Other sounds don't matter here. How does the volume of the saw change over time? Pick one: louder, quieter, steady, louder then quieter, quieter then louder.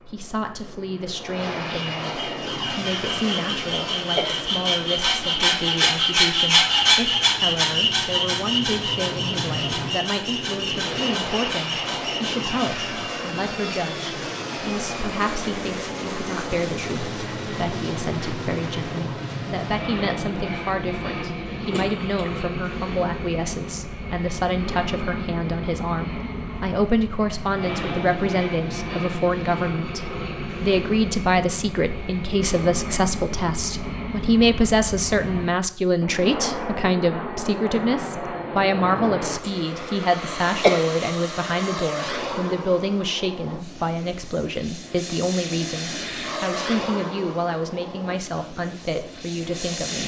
louder then quieter.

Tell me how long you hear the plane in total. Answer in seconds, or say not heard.
50 s.